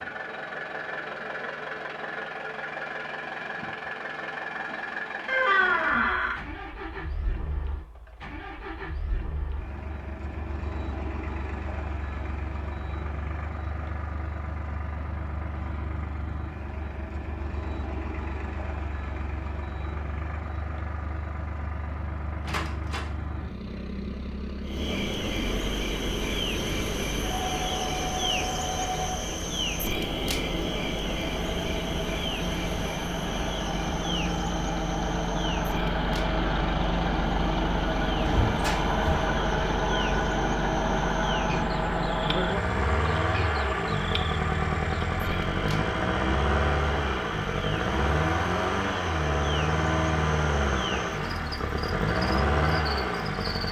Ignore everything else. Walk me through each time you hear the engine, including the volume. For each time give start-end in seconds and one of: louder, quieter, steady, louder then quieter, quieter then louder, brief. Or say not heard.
0.0-53.6 louder.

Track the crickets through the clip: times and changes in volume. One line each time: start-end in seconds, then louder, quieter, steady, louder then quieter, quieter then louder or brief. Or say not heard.
24.6-53.6 quieter.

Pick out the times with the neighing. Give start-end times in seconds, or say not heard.
not heard.